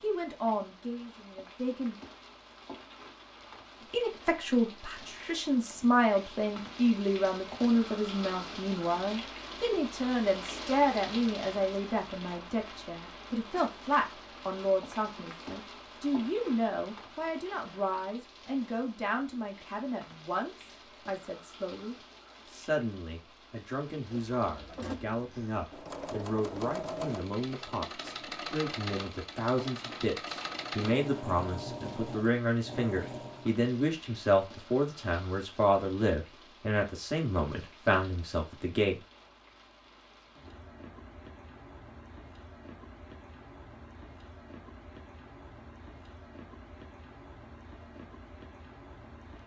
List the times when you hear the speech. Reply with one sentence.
The speech can be heard from 0.0 to 1.9 s and from 3.9 to 39.0 s.